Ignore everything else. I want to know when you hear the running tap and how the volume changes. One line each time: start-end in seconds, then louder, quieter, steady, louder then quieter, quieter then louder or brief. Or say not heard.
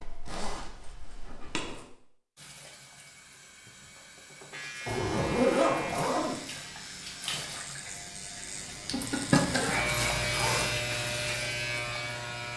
2.4-12.5 louder then quieter.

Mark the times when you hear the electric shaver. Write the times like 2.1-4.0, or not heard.
4.5-12.5.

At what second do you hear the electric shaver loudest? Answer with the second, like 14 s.
10 s.